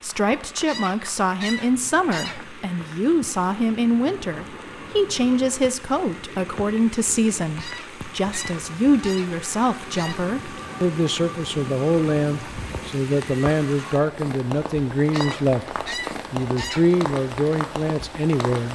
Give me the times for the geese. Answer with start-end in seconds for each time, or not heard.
0.7-2.6, 7.5-10.2, 15.1-16.9.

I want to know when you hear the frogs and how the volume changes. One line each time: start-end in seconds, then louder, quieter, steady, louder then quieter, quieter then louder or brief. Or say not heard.
not heard.